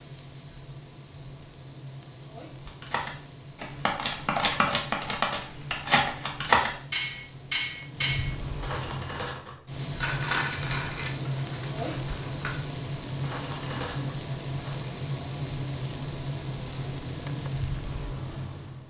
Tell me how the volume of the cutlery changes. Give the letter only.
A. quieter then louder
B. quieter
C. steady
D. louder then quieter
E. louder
B.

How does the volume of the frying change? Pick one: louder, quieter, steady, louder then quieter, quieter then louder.
louder.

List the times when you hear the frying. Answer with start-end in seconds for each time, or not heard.
0.0-18.8.